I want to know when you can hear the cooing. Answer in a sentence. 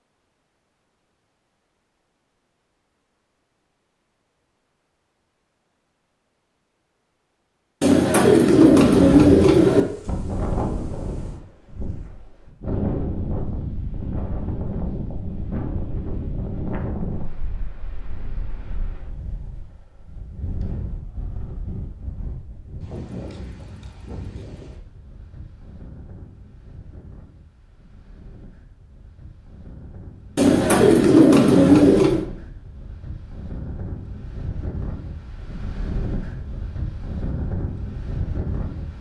You can hear the cooing from 7.8 to 9.8 s and from 30.4 to 32.2 s.